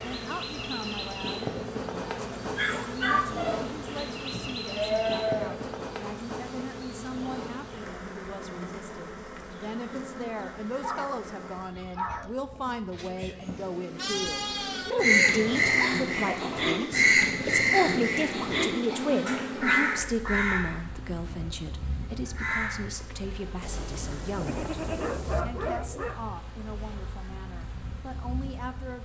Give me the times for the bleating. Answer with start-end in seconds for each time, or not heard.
4.3-5.5, 12.9-14.9, 23.6-25.4.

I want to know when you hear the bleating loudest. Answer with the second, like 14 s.
5 s.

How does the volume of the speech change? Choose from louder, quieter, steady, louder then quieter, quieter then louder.
louder then quieter.